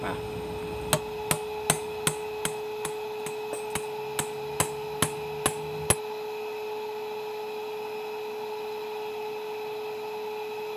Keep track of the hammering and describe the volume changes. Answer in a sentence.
The volume of the hammering goes down, then up.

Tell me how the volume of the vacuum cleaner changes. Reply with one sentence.
The volume of the vacuum cleaner stays about the same.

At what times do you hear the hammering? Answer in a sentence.
You can hear the hammering from 0.0 to 6.0 s.